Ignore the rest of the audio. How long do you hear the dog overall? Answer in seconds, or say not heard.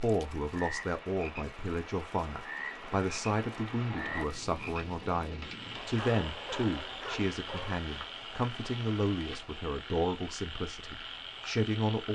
2 s.